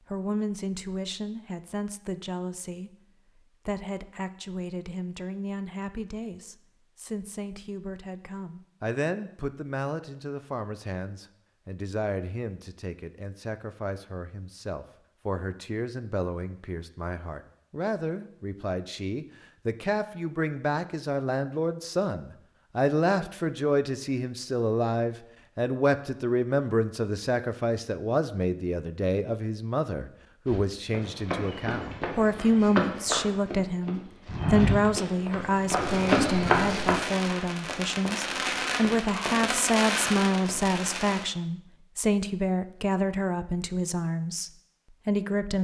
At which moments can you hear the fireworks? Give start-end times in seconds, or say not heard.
35.5-41.3.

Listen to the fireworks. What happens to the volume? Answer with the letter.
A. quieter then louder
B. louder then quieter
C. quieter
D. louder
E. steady
D.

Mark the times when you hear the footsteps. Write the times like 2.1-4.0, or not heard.
30.4-36.9.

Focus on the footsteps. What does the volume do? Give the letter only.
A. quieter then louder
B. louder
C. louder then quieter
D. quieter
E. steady
B.